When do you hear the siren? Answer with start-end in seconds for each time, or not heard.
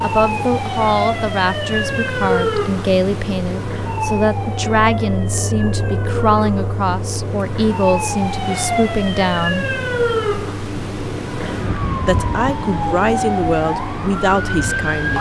0.0-15.1.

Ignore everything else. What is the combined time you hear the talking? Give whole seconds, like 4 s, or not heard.
13 s.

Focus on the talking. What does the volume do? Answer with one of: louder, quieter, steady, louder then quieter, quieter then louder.
steady.